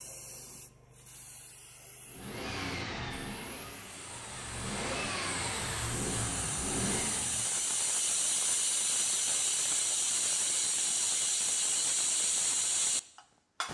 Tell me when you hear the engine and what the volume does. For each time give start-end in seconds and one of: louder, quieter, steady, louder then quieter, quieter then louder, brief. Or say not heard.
2.0-7.5 quieter then louder.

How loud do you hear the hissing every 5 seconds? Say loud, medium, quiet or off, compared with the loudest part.
quiet, loud, loud.